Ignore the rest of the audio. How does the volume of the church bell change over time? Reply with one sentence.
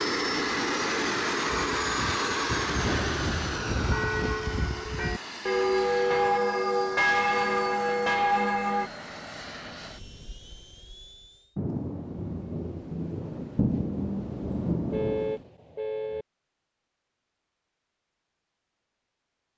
The loudness of the church bell goes up.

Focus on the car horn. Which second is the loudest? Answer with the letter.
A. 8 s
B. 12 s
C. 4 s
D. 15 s
D.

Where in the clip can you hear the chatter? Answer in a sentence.
You can't hear the chatter here.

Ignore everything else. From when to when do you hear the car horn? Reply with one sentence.
You can hear the car horn from 2.8 to 3.9 s and from 14.9 to 16.2 s.